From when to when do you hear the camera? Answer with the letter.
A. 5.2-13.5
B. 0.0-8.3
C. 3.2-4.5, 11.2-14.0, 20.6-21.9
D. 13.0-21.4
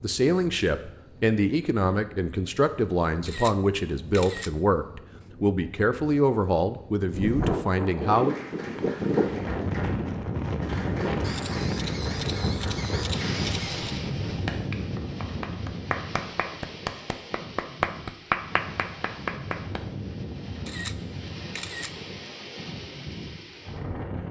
C.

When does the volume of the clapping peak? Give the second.
18 s.